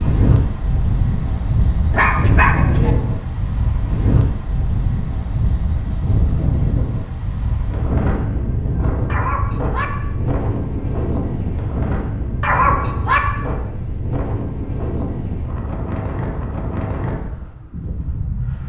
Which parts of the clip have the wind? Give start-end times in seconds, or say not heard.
0.0-18.6.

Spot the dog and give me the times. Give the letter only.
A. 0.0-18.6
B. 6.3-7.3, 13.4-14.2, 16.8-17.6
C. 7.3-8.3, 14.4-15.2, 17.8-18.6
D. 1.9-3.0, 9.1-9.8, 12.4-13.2
D.